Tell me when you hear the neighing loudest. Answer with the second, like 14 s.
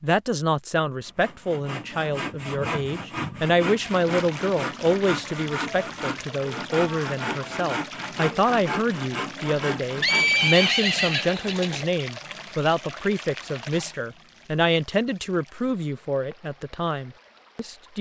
10 s.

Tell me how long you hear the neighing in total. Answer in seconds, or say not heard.
2 s.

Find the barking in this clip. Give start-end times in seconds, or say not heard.
not heard.